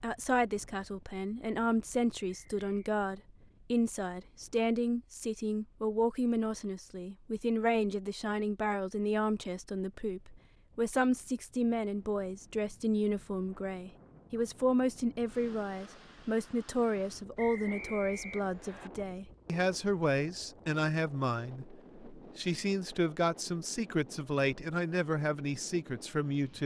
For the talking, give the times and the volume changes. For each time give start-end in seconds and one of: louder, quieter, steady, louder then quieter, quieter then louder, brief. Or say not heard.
0.0-26.6 steady.